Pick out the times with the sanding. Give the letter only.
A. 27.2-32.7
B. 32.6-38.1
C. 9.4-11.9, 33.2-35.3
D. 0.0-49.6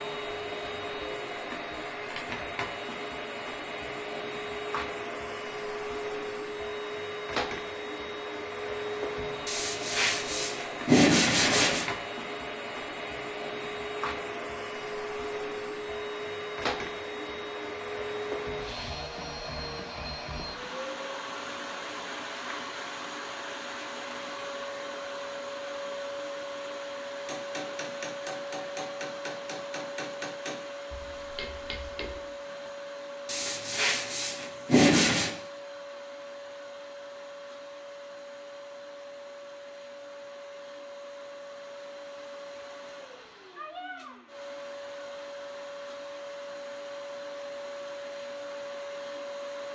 C.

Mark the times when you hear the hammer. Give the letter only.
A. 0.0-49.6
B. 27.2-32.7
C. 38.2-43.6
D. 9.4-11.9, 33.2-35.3
B.